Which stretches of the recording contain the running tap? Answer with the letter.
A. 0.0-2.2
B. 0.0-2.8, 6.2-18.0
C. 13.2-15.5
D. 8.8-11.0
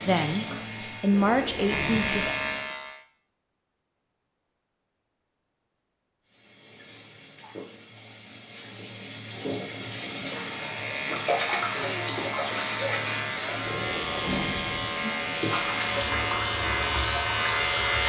B.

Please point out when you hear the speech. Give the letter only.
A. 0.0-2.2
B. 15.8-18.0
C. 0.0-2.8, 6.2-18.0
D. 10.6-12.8
A.